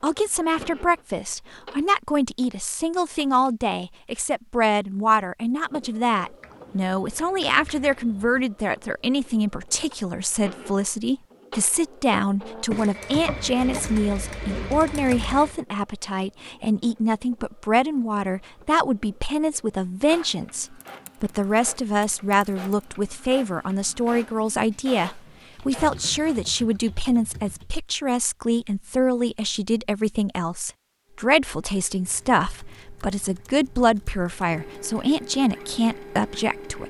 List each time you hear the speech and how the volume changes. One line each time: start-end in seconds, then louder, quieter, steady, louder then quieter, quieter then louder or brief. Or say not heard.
0.0-36.8 steady.